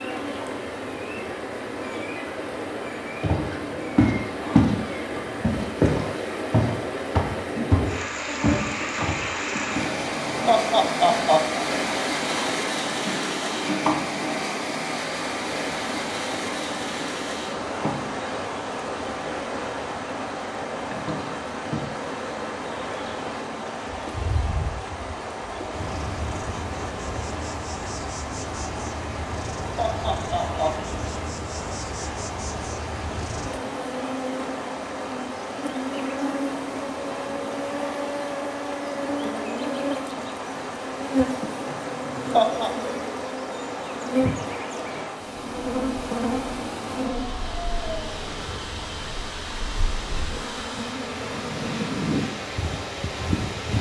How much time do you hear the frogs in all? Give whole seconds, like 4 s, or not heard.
not heard.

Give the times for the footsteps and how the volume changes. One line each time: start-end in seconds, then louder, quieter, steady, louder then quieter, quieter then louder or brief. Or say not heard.
3.2-4.8 brief
5.4-9.8 quieter.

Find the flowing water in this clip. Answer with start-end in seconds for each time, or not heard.
0.0-53.7.